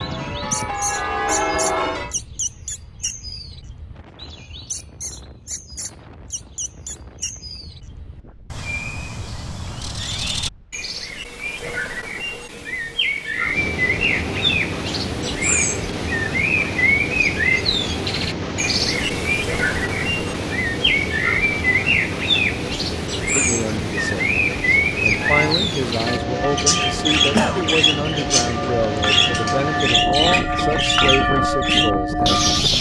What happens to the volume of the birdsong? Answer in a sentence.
The volume of the birdsong goes up.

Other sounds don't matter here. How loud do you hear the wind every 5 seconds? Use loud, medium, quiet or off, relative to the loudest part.
quiet, quiet, medium, loud, loud, loud, loud.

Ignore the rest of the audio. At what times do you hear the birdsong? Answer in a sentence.
The birdsong can be heard from 0.0 to 32.7 s.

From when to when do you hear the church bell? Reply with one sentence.
The church bell can be heard from 0.0 to 2.1 s and from 25.2 to 32.7 s.